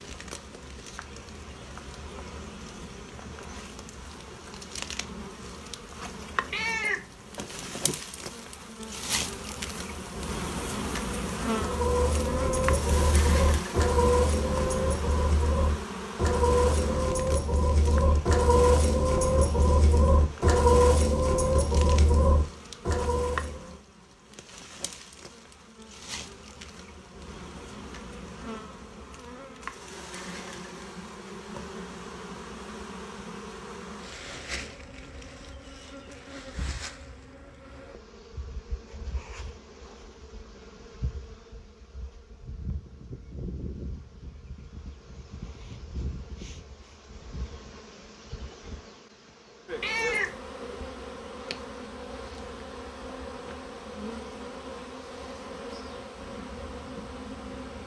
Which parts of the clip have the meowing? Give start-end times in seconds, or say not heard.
6.5-8.0, 49.8-50.4.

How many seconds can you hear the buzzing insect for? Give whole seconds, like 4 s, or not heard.
58 s.